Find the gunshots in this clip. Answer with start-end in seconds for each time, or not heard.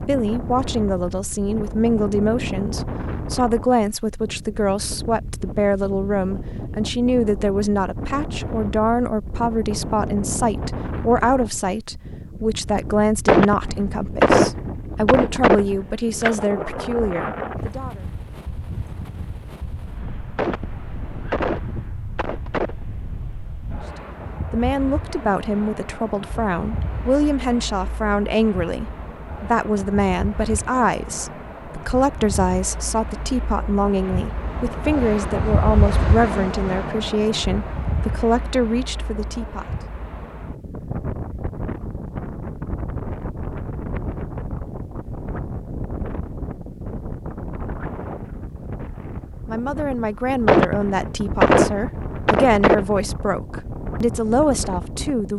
13.2-16.4, 20.4-22.9, 50.5-53.0.